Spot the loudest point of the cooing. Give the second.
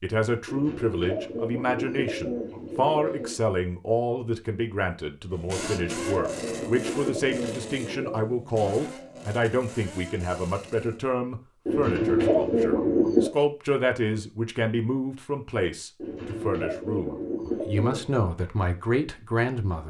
13 s.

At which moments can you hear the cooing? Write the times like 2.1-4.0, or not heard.
0.5-3.4, 5.5-8.3, 11.7-13.3, 15.9-18.1.